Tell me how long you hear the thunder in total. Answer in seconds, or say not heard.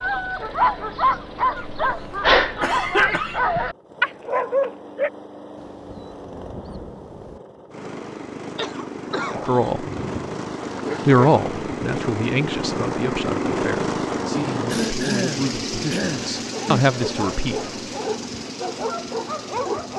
2 s.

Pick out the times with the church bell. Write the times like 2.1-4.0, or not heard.
not heard.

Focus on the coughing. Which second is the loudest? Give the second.
3 s.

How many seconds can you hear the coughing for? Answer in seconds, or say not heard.
5 s.